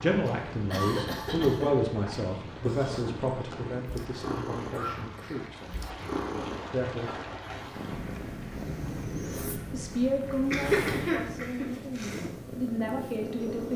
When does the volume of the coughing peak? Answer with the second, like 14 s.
11 s.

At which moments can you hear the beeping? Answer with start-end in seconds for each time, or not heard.
not heard.